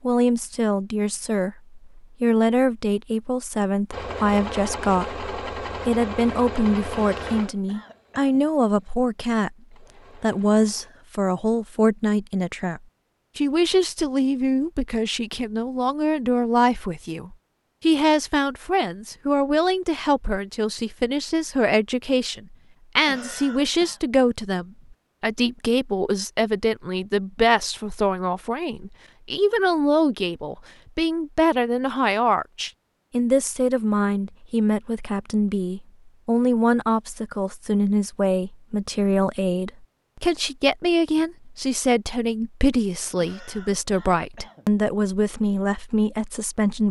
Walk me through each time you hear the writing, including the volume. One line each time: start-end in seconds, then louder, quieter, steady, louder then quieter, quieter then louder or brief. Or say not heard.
not heard.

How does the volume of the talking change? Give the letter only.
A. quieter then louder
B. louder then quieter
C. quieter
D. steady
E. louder
D.